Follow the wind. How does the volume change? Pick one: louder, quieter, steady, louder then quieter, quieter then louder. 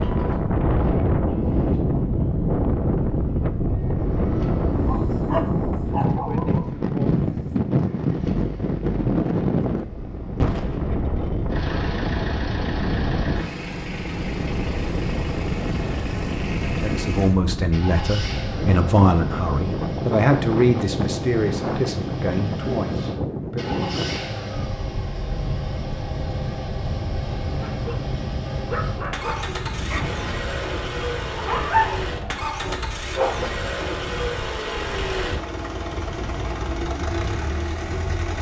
quieter.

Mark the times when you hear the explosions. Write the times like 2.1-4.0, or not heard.
10.4-11.2.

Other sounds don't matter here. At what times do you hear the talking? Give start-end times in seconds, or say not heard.
16.6-23.8.